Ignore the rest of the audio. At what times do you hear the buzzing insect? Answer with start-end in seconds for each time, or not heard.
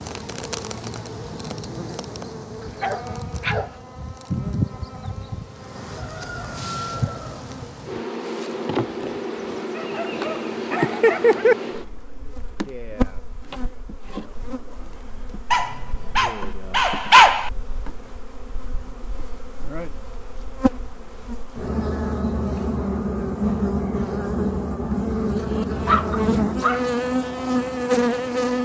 0.0-28.6.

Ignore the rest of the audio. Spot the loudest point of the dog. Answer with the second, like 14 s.
17 s.